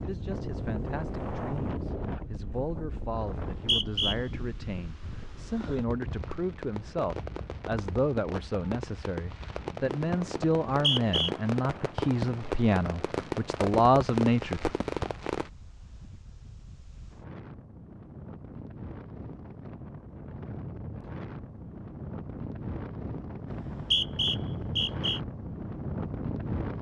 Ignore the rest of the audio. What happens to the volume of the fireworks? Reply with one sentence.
The loudness of the fireworks goes up.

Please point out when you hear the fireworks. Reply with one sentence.
You can hear the fireworks from 5.6 to 15.5 s.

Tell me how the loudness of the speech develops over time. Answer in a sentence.
The volume of the speech goes up.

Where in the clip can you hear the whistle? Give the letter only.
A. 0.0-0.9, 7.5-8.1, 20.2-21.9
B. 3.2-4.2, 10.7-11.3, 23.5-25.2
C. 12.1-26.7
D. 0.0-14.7
B.